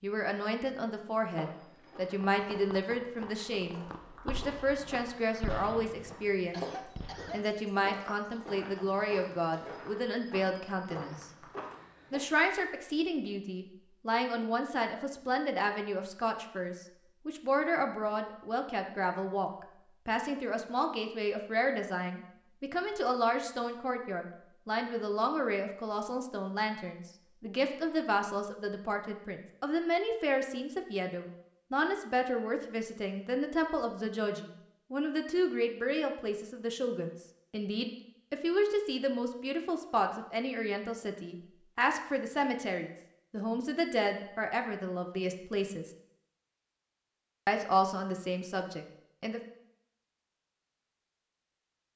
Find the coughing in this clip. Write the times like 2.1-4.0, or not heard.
6.5-7.5.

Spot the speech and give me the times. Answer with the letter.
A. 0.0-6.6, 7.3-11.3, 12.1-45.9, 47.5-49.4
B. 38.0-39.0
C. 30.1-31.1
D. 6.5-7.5
A.